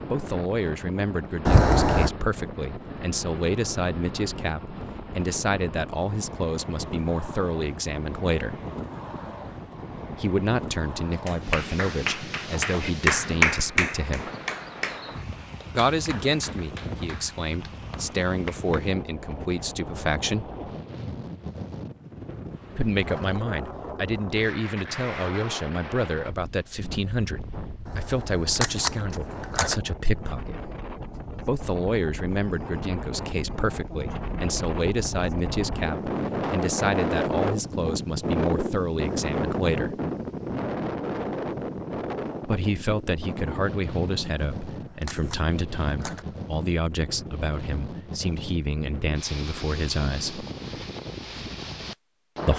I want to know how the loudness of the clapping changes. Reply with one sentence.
The volume of the clapping goes up, then down.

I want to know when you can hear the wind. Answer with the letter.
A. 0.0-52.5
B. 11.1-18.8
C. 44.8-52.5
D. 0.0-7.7
A.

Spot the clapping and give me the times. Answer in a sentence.
The clapping can be heard from 11.1 to 18.8 s.